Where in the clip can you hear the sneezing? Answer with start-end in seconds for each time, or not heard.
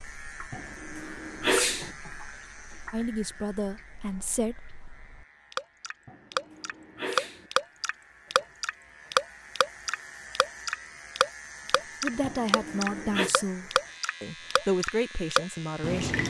0.5-1.9, 6.0-7.5, 12.2-13.3.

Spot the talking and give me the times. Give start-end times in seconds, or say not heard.
2.9-4.6, 12.0-16.2.